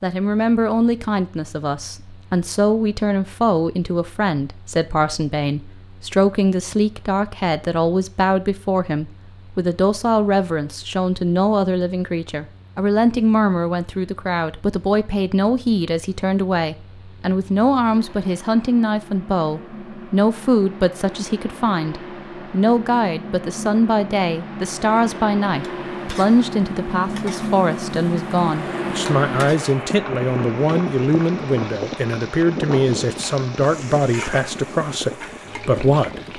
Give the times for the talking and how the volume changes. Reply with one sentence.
The talking can be heard from 0.0 to 36.3 s, at a steady volume.